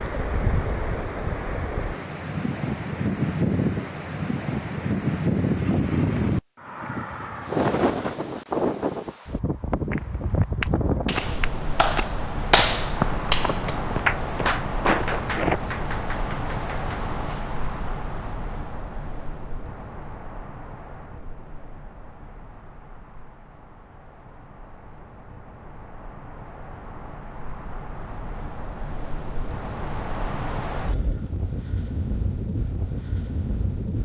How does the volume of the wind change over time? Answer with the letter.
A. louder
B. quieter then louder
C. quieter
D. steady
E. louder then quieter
B.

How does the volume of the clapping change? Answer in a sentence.
The volume of the clapping goes down.